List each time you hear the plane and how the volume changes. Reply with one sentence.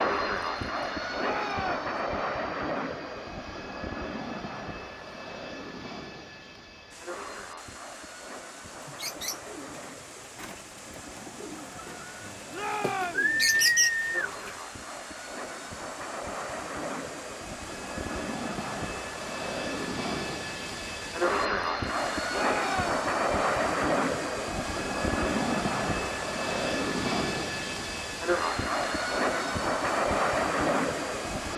The plane can be heard from 0.0 to 31.5 s, getting quieter then louder.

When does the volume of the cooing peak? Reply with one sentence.
The loudest moment of the cooing is at 14 seconds.